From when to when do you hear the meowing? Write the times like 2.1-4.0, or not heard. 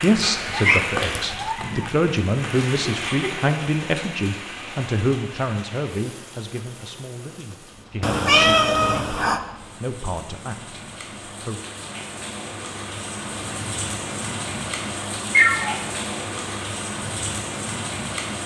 0.5-1.9, 8.0-9.4, 15.3-15.8.